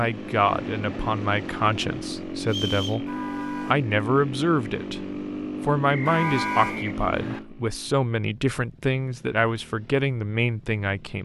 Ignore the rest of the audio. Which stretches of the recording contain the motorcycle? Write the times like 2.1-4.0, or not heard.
0.0-11.2.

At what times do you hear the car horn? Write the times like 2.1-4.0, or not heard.
3.0-3.8, 6.0-6.8.